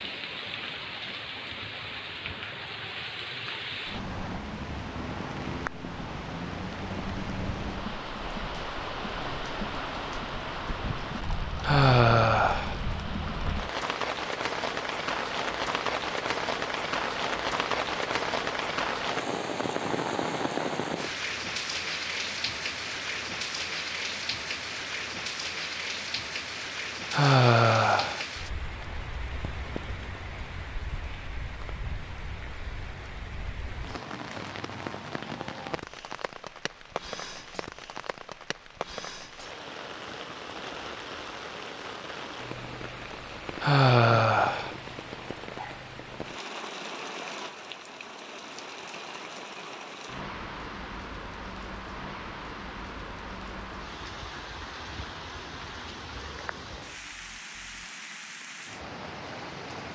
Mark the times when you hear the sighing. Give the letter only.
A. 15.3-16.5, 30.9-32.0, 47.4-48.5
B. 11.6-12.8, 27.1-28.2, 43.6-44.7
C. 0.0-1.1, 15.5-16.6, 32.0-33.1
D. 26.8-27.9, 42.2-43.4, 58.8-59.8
B.